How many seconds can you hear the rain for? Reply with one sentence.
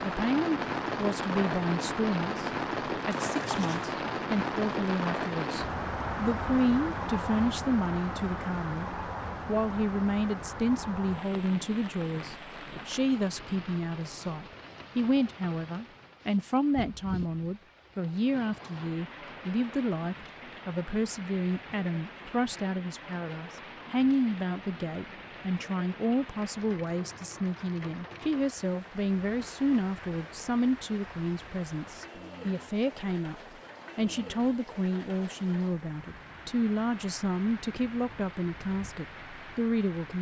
You can hear the rain for 40 seconds altogether.